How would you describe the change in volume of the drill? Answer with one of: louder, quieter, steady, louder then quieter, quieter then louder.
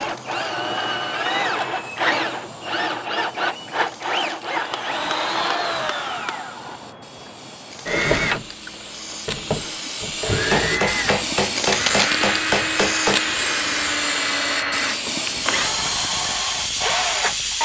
steady.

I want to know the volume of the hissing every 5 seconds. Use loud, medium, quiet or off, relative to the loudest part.
quiet, medium, loud, loud.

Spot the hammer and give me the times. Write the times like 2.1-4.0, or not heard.
4.7-6.4, 10.5-13.2.